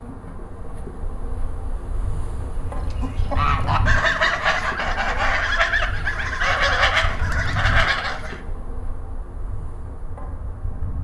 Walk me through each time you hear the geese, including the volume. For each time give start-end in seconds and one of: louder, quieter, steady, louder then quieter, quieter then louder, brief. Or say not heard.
2.9-8.4 steady.